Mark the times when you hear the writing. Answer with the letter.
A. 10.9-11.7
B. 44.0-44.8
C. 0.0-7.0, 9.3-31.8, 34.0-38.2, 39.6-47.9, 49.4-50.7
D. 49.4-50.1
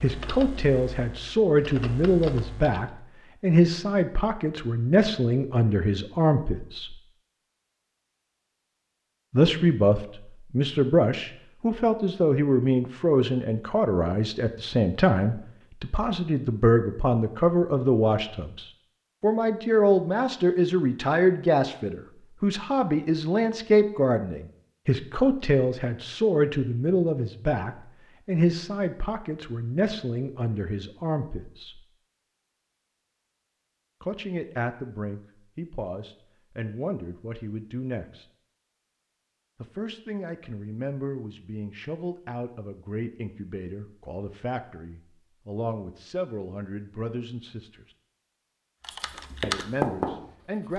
D.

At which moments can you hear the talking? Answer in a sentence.
The talking can be heard from 0.0 to 7.0 s, from 9.3 to 31.8 s, from 34.0 to 38.2 s, from 39.6 to 47.9 s and from 49.4 to 50.7 s.